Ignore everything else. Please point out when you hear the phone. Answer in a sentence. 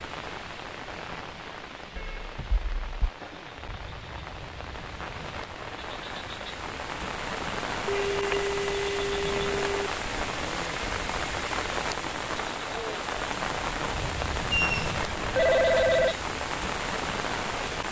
You can hear the phone from 1.9 to 3.1 s, from 7.8 to 9.9 s and from 14.5 to 16.1 s.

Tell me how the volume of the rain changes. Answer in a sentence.
The volume of the rain goes up.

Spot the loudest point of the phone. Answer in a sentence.
The loudest moment of the phone is at 16 seconds.